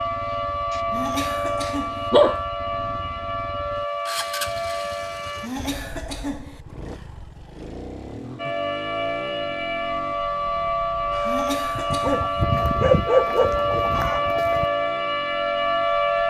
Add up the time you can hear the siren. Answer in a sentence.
The siren can be heard for 13 seconds in total.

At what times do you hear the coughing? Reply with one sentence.
You can hear the coughing from 0.9 to 2.1 s, from 5.4 to 6.6 s and from 11.2 to 12.4 s.